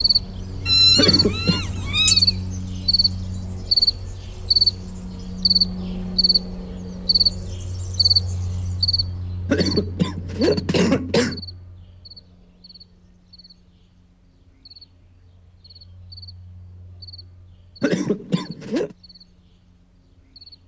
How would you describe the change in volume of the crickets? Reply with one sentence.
The volume of the crickets goes down.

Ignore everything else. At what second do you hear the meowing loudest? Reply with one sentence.
The volume of the meowing peaks at 1 second.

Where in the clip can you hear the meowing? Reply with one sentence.
The meowing can be heard from 0.7 to 2.2 s.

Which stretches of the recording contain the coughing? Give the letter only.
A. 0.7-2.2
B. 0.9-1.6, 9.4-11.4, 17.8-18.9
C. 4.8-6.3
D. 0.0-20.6
B.